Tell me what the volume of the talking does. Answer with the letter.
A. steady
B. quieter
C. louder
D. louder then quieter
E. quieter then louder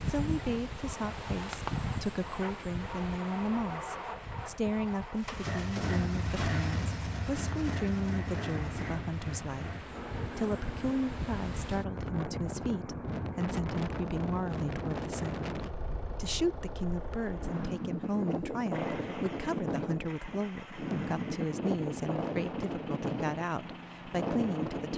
A.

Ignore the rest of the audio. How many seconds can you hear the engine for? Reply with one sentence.
The engine can be heard for 25 seconds in total.